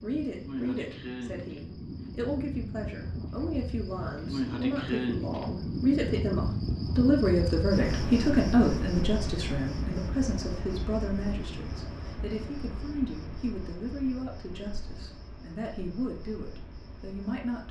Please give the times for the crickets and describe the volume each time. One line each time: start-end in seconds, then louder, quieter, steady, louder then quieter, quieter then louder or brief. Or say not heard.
0.0-17.6 louder then quieter.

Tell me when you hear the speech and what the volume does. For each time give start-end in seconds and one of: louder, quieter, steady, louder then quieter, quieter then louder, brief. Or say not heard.
0.0-17.6 louder then quieter.